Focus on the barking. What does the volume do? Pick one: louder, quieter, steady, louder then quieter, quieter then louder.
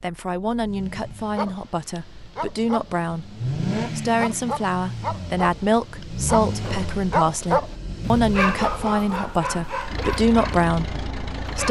louder then quieter.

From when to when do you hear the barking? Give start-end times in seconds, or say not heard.
1.3-11.6.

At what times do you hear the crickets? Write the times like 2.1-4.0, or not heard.
not heard.